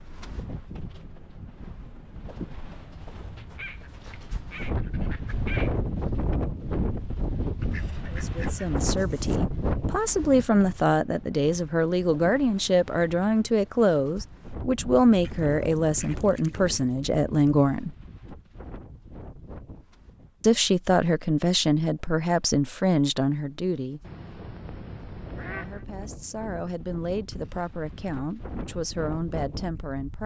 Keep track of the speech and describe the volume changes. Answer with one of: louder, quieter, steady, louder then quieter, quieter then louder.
quieter.